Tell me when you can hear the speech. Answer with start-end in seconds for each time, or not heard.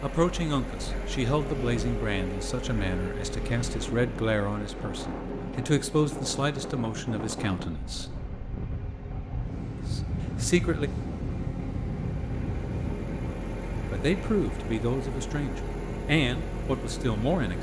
0.0-8.1, 9.9-10.9, 13.9-17.5.